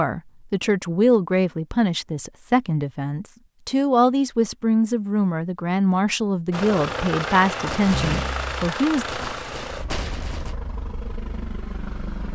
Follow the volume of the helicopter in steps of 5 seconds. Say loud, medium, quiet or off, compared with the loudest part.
off, loud, medium.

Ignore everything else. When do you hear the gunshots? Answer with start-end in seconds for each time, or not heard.
7.7-10.6.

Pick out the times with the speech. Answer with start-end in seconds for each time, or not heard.
0.0-9.1.